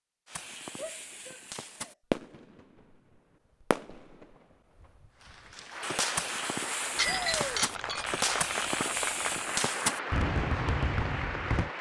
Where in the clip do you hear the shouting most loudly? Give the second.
7 s.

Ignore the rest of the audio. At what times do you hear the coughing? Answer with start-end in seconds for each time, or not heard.
not heard.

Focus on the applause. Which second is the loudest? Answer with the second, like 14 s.
9 s.